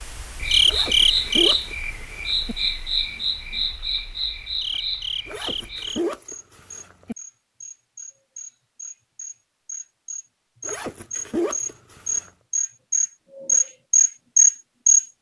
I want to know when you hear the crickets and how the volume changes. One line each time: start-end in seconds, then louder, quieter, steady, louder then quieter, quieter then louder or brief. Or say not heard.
0.0-15.1 quieter then louder.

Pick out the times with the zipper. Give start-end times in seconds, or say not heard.
0.7-2.5, 5.2-7.2, 10.7-12.3.